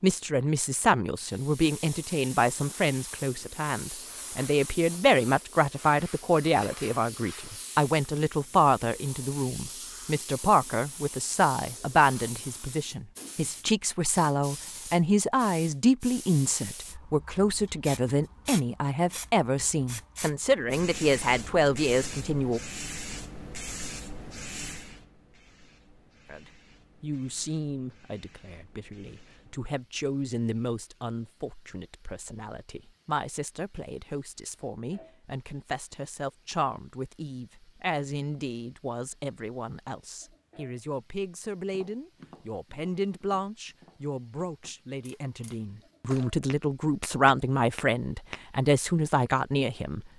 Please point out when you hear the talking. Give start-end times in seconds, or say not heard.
0.0-22.6, 26.2-50.0.